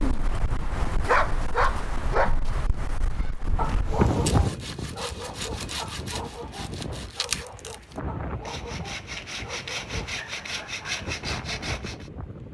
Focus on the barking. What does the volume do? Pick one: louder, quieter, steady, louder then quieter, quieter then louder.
quieter.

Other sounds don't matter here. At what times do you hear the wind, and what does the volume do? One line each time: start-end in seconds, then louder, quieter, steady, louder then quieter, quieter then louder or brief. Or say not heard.
0.0-12.4 louder then quieter.